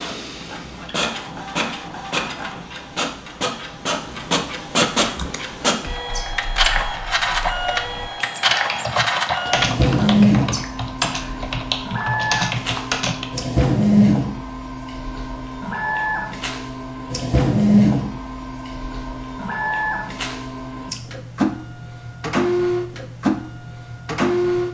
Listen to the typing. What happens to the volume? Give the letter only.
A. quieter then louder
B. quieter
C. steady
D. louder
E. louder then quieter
D.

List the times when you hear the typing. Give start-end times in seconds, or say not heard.
5.0-13.4.